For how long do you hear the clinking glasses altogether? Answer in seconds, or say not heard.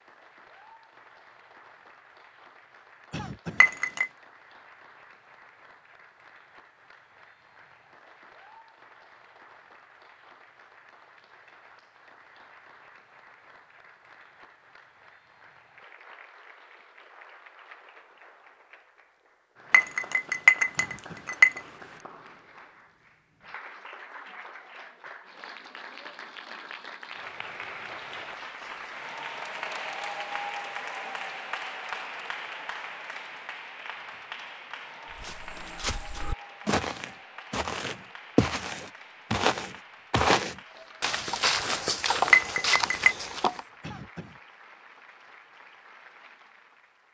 3 s.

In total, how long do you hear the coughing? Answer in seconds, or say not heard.
2 s.